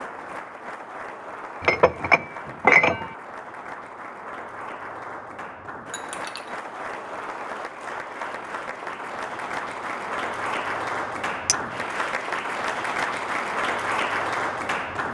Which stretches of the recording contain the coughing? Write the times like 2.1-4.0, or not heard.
not heard.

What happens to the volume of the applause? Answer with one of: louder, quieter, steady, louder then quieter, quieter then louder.
louder.